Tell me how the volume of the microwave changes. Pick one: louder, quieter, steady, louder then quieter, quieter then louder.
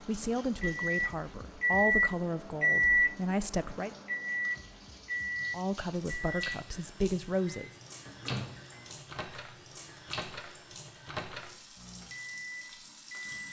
quieter.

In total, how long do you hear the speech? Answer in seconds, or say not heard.
6 s.